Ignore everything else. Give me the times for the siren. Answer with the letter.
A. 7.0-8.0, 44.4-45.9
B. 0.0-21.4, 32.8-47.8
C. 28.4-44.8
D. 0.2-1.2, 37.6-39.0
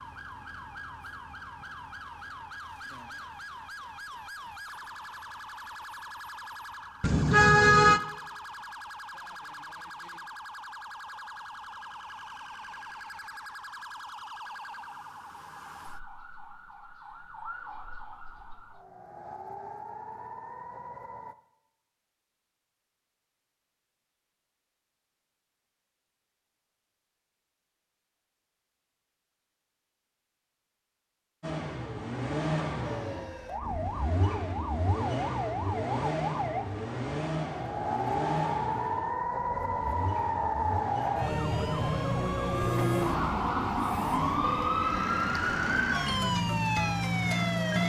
B.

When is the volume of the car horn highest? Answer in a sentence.
The loudest moment of the car horn is at 8 seconds.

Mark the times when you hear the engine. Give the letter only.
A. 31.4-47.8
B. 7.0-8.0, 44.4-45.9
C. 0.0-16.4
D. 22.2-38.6
A.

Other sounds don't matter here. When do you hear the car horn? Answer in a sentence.
The car horn can be heard from 7.0 to 8.0 s and from 44.4 to 45.9 s.